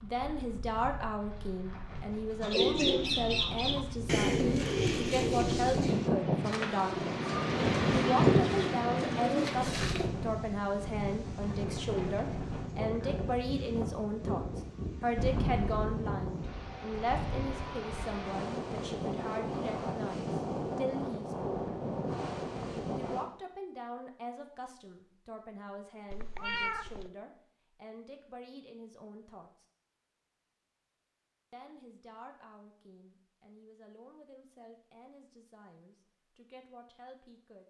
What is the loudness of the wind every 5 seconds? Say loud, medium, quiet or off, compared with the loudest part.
quiet, loud, medium, medium, medium, off, off, off.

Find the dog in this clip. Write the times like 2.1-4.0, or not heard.
not heard.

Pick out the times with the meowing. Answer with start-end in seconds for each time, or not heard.
15.2-15.9, 26.1-27.1.